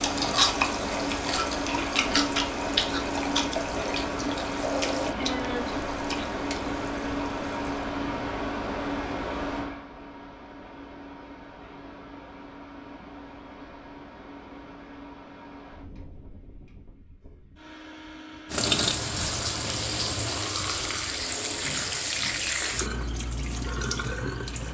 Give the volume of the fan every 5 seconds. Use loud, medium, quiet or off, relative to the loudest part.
loud, loud, quiet, quiet, quiet.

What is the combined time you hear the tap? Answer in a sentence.
You can hear the tap for 14 seconds altogether.